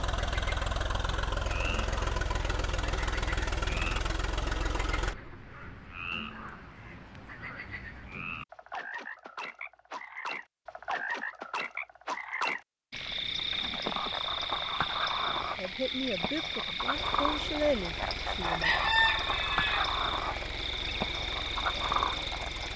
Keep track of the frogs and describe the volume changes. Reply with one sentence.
The loudness of the frogs goes up.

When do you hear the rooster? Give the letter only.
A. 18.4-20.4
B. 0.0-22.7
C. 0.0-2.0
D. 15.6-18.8
A.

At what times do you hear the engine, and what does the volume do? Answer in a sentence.
You can hear the engine from 0.0 to 5.2 s, at a steady volume; and from 16.9 to 22.7 s, at a steady volume.